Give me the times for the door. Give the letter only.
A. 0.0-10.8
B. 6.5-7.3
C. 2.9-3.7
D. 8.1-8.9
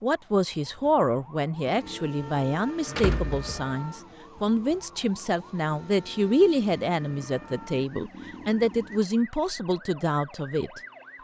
C.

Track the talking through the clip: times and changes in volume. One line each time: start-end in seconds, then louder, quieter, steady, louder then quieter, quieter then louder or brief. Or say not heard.
0.0-10.8 steady.